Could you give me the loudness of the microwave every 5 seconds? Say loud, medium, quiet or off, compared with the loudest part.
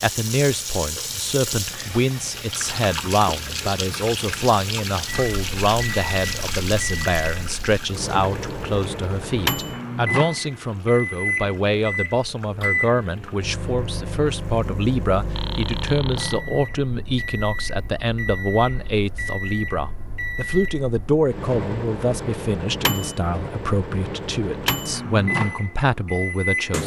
off, loud, loud, medium, loud, loud.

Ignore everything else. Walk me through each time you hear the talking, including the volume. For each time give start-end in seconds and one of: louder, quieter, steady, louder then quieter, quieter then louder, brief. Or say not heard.
0.0-26.8 steady.